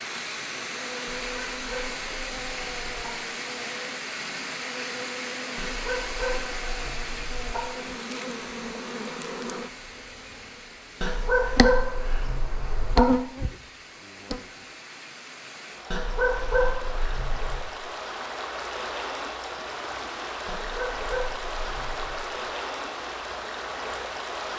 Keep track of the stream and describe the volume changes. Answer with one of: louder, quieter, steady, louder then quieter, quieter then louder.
quieter then louder.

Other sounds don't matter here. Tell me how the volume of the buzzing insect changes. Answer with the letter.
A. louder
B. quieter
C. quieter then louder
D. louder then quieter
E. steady
A.